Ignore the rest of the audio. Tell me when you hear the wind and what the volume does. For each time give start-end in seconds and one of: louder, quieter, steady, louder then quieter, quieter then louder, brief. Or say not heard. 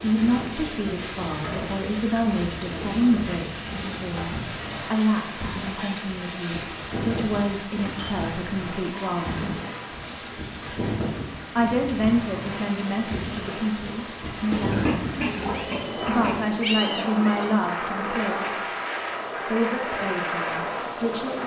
0.0-21.4 louder.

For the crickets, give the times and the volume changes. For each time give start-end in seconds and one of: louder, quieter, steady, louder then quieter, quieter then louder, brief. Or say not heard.
0.0-21.4 quieter.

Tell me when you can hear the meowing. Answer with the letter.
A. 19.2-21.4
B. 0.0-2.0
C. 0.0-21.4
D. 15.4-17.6
D.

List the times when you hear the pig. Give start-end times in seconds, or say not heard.
14.5-16.6.